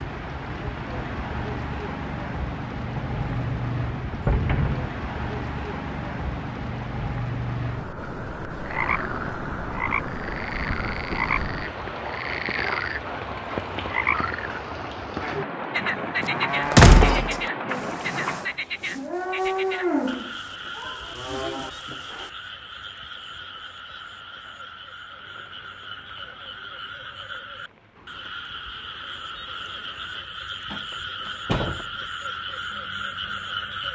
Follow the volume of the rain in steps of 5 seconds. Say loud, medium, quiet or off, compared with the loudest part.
loud, loud, loud, loud, quiet, quiet, quiet.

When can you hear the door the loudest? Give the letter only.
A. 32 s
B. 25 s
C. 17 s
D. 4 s
C.